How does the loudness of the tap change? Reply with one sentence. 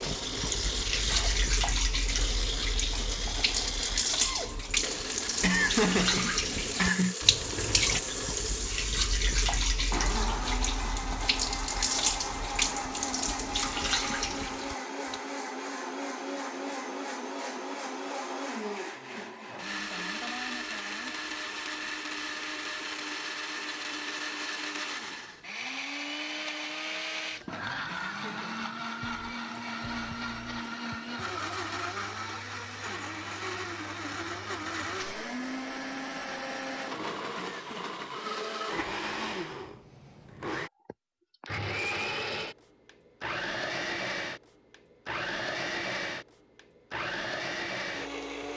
The loudness of the tap stays about the same.